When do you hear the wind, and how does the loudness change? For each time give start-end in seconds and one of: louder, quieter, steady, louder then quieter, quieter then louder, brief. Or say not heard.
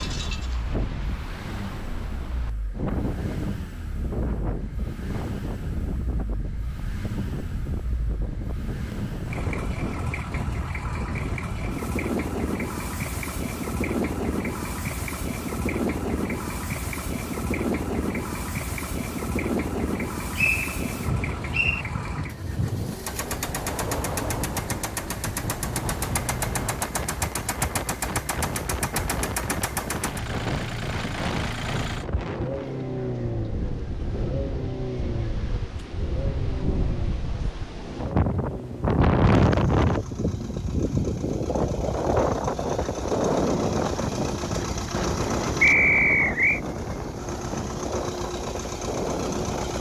0.0-49.7 louder.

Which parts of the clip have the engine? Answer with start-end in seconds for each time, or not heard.
0.2-49.7.